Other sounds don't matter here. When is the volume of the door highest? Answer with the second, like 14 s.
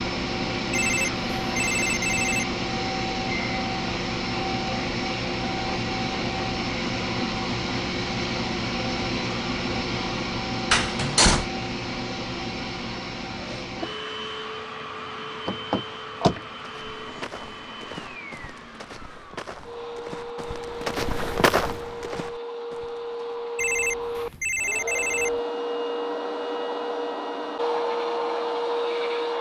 11 s.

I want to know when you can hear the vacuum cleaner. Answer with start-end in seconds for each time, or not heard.
0.0-29.3.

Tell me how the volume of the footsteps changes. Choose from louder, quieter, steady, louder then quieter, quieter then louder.
louder then quieter.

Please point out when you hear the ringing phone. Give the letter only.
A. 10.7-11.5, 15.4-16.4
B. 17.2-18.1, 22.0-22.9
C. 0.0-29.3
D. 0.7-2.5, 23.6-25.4
D.